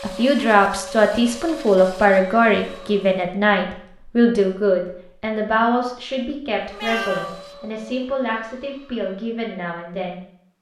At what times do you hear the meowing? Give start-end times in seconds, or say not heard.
6.2-7.4.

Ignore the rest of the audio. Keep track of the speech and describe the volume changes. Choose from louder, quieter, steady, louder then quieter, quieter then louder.
quieter.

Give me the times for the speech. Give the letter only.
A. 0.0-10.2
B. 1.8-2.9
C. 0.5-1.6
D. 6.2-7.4
A.